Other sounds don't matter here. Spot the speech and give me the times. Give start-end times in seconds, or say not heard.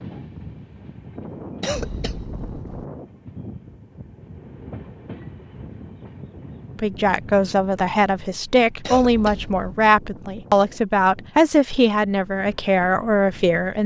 6.8-13.8.